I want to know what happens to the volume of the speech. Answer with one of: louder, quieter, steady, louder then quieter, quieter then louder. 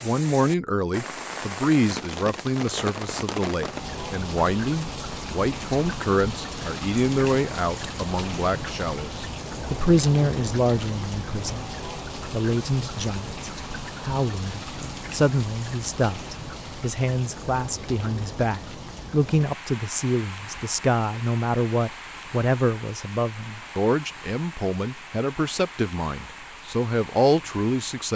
steady.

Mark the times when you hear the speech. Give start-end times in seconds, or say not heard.
0.0-28.1.